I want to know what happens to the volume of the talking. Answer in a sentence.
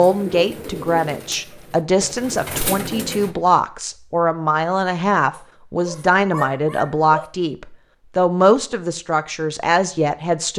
The volume of the talking stays about the same.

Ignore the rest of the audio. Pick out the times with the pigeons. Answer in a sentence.
The pigeons can be heard from 0.0 to 3.4 s.